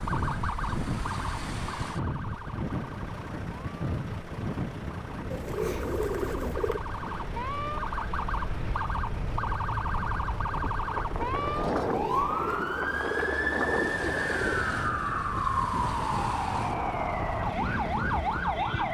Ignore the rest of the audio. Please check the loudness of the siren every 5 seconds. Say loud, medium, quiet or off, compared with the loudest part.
medium, medium, loud, loud.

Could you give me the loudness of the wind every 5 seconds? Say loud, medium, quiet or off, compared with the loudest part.
loud, medium, loud, loud.